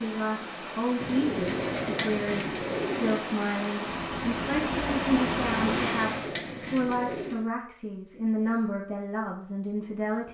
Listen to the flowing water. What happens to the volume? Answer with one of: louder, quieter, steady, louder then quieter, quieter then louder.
louder.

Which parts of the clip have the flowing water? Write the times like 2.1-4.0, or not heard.
0.0-6.3.